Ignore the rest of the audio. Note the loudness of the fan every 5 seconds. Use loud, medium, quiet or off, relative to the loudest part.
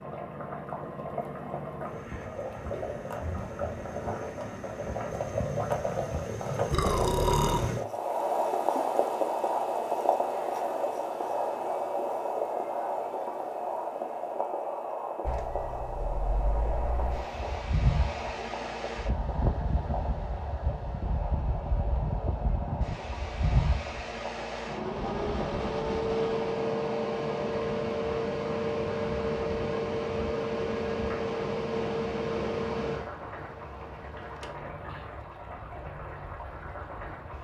off, off, off, medium, medium, loud, loud, quiet.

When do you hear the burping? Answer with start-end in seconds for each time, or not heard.
6.7-7.7.